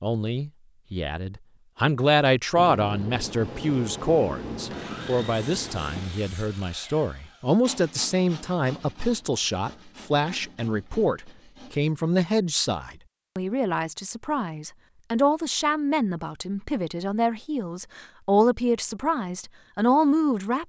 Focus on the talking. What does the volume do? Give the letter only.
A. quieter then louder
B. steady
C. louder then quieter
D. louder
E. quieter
B.